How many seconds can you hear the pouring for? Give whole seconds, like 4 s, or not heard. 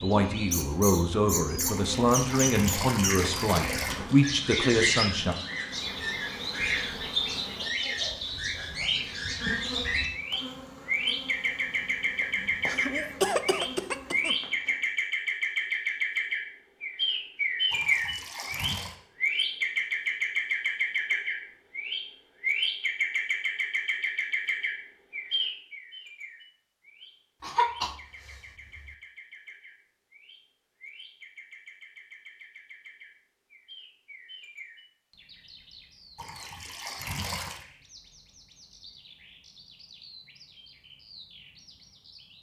5 s.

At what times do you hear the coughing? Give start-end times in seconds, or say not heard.
12.4-14.3, 27.4-28.9.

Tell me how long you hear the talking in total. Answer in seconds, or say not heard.
5 s.